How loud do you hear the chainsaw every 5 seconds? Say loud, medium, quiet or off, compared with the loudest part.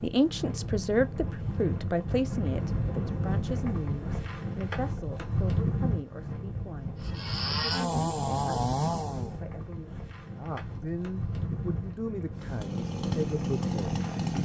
off, loud, loud.